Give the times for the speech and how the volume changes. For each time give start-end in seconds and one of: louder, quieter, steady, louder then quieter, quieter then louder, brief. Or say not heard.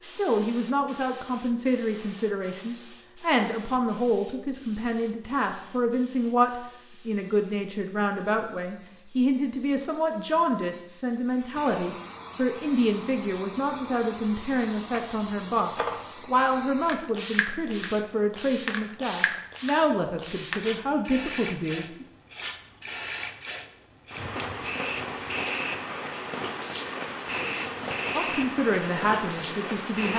0.0-22.1 steady
28.1-30.1 brief.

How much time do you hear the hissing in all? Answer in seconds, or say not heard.
30 s.